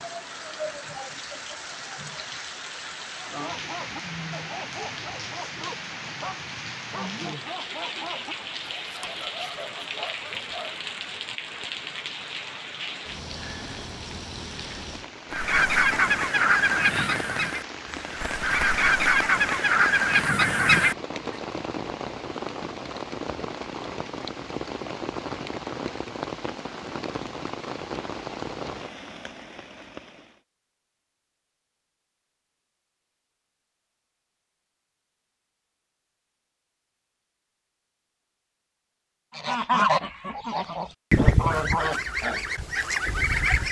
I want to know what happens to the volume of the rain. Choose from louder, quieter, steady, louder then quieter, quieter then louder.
steady.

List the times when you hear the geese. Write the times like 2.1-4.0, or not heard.
15.3-20.9, 39.4-43.6.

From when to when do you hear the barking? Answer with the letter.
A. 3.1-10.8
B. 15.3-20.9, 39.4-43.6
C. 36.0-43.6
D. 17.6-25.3
A.